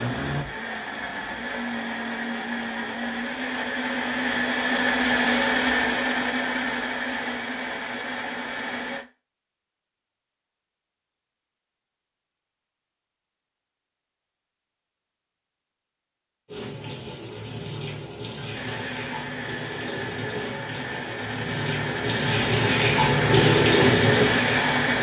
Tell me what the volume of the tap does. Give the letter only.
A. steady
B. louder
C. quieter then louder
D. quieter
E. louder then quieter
B.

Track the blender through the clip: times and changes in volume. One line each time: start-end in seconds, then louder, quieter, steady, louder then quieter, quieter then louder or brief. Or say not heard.
0.0-9.1 louder then quieter
18.5-24.9 louder.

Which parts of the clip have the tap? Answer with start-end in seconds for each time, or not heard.
16.4-24.9.